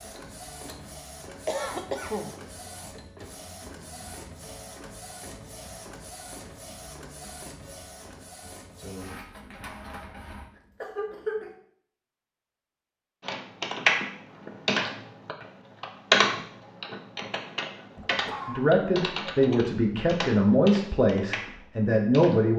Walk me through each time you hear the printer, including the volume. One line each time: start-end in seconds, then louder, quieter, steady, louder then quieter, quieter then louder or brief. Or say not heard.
0.0-10.5 steady.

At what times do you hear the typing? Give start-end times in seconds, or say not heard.
13.2-22.4.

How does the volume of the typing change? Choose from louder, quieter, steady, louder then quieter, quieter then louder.
quieter.